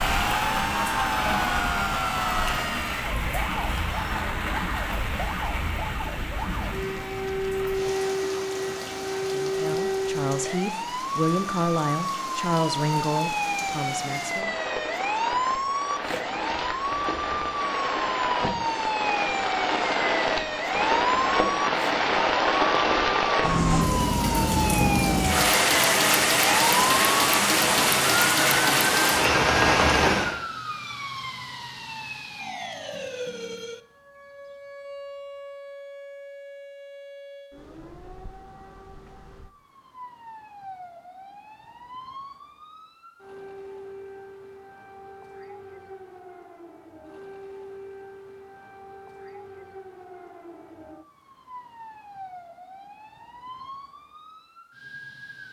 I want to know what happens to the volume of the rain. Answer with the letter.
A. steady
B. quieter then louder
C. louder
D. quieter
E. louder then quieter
B.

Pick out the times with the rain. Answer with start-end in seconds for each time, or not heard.
0.0-30.4.